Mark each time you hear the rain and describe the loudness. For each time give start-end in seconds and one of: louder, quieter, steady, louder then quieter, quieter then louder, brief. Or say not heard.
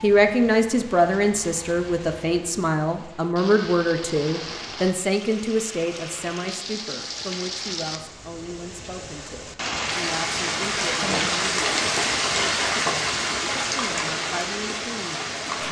0.0-15.6 louder.